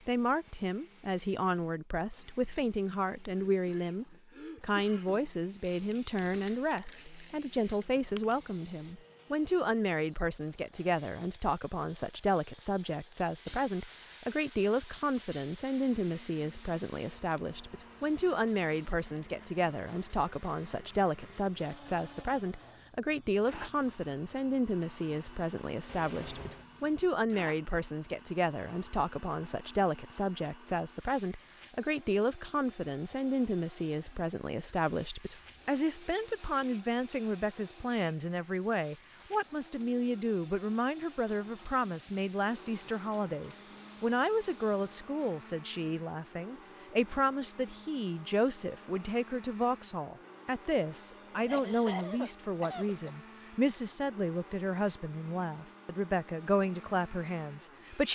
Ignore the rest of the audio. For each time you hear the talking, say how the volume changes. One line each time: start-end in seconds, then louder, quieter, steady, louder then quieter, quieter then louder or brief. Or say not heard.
0.1-58.0 steady.